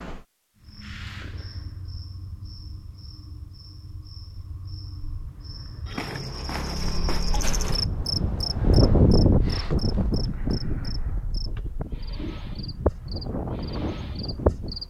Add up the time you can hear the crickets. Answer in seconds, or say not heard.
15 s.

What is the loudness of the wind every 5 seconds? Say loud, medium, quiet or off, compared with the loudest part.
off, loud, medium.